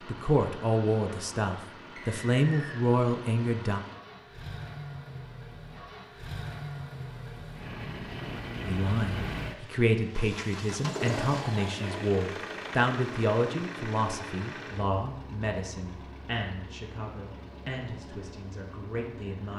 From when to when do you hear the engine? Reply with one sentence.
The engine can be heard from 0.0 to 19.5 s.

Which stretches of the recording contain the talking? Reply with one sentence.
You can hear the talking from 0.1 to 3.8 s and from 8.7 to 19.5 s.